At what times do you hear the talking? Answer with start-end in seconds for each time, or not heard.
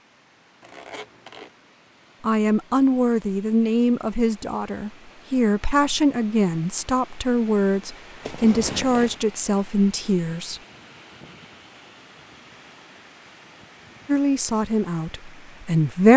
2.2-10.6, 14.1-16.1.